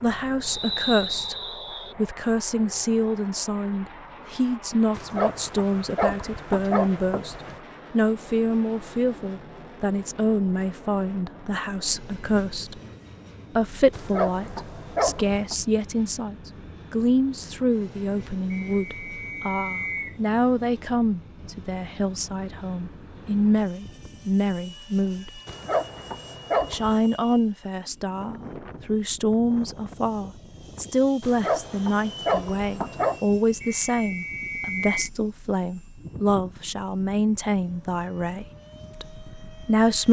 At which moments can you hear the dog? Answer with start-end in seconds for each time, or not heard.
5.0-7.6, 13.9-15.6, 25.4-27.1, 31.2-33.2.